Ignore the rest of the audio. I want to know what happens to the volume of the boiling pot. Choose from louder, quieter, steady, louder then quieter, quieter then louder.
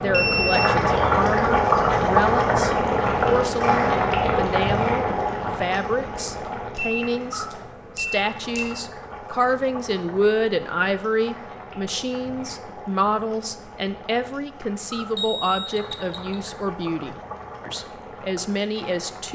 quieter.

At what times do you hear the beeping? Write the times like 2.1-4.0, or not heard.
0.1-0.8, 6.8-8.7, 15.2-16.4.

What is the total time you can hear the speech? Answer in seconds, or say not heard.
19 s.